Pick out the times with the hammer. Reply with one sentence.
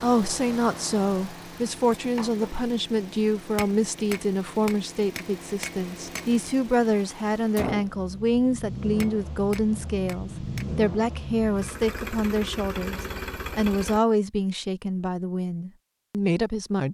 You can hear the hammer from 3.5 to 6.2 s and from 9.0 to 10.7 s.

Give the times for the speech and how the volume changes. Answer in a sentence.
The speech can be heard from 0.0 to 16.8 s, at a steady volume.